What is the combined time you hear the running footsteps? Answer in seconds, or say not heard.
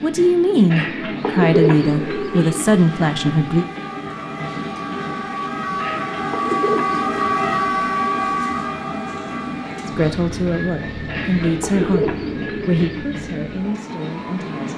not heard.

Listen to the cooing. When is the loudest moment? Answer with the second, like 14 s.
2 s.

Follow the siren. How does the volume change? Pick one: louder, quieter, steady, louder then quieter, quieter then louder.
louder then quieter.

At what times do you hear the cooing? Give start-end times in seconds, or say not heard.
0.7-2.6, 5.8-7.5, 11.1-13.1.